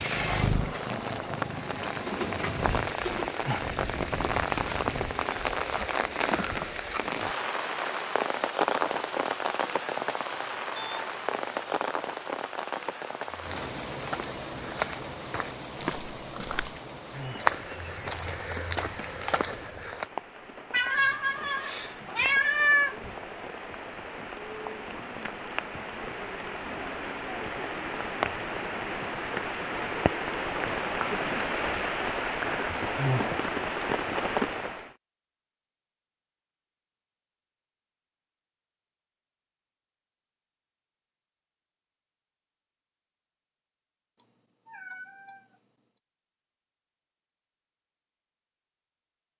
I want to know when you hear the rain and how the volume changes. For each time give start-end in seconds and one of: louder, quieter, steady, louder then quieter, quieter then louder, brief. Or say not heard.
0.0-35.0 quieter then louder.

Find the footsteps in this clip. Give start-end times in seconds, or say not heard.
13.2-20.1.